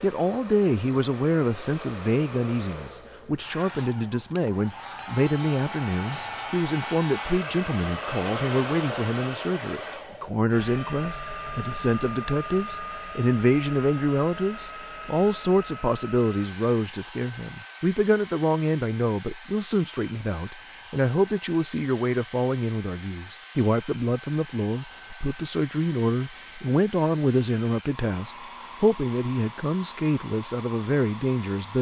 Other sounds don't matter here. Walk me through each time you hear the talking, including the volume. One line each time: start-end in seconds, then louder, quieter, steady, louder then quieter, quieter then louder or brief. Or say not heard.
0.0-31.7 steady.